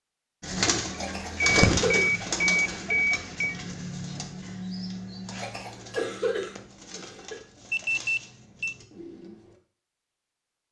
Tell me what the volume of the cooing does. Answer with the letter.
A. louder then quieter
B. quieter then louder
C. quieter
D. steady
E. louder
C.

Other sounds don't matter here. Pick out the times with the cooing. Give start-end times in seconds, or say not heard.
0.4-9.6.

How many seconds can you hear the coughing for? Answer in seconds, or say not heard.
4 s.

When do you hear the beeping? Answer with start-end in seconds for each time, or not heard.
1.4-3.5, 7.7-8.8.